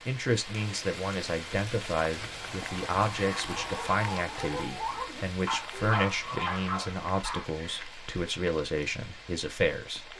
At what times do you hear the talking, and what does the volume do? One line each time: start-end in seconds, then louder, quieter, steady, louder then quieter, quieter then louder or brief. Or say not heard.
0.1-10.1 steady.